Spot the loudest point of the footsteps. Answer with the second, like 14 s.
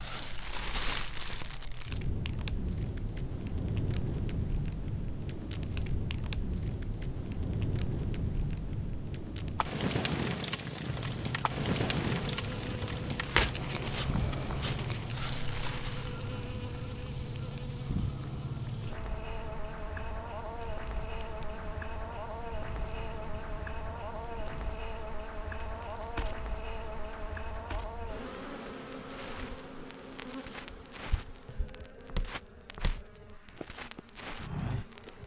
35 s.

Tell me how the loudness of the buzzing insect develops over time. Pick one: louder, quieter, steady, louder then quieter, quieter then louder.
quieter.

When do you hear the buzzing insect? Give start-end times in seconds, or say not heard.
10.8-35.2.